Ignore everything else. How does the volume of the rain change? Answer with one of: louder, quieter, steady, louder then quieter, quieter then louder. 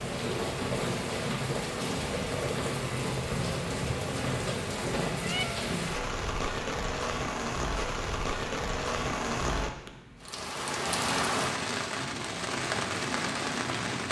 steady.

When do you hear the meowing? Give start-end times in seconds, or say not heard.
5.2-5.7.